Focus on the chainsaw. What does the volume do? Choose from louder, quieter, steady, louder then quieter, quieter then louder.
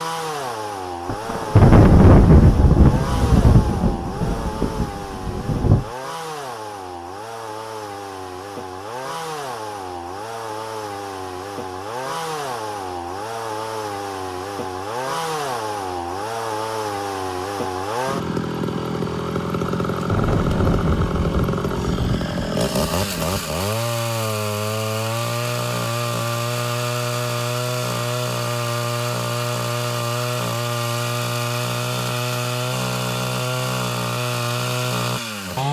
louder.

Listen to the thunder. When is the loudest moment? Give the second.
2 s.